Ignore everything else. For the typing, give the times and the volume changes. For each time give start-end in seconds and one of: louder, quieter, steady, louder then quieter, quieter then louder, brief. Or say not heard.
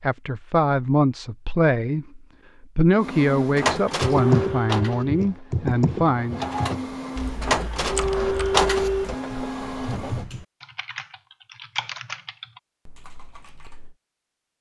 4.0-13.9 quieter then louder.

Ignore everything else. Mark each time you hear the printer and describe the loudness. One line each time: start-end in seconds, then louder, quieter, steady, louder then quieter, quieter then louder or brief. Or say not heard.
3.0-10.2 quieter then louder.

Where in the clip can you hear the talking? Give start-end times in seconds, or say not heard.
0.0-6.5.